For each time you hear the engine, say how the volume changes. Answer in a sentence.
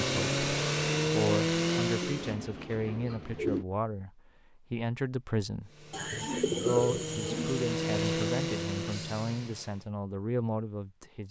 You can hear the engine briefly from 0.0 to 2.4 s; and from 5.7 to 9.9 s, getting louder then quieter.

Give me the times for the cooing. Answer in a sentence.
You can hear the cooing from 2.0 to 3.6 s and from 5.9 to 7.7 s.